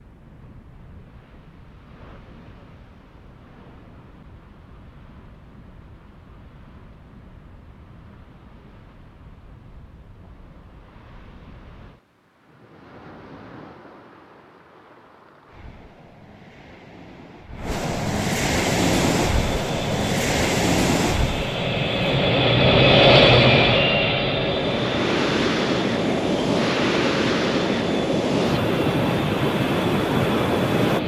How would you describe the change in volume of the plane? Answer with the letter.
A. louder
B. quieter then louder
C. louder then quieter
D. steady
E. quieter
C.